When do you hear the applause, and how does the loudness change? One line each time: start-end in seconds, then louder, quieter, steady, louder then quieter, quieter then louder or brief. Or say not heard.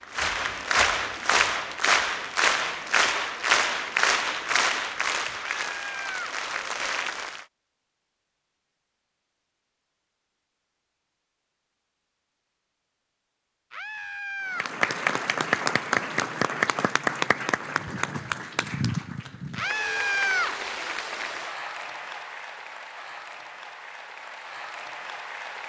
0.0-7.5 quieter
14.4-25.6 quieter.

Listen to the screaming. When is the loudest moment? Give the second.
20 s.